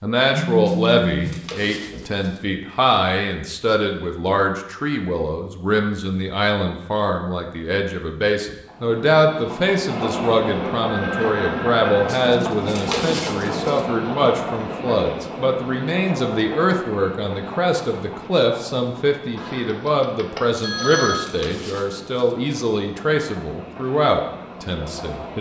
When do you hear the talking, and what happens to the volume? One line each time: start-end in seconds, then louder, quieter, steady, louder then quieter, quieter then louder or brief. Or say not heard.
0.0-25.3 steady.